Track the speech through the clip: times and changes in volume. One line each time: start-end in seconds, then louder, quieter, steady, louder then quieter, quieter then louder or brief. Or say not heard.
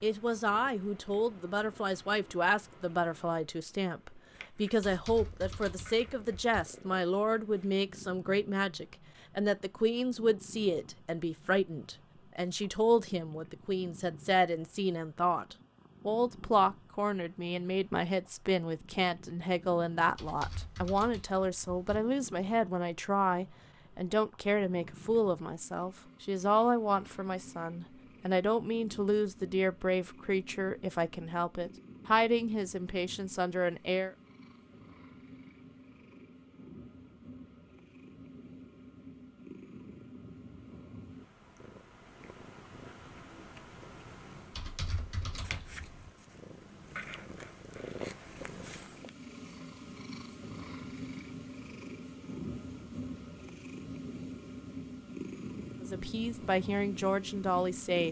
0.0-34.1 steady
55.8-58.0 brief.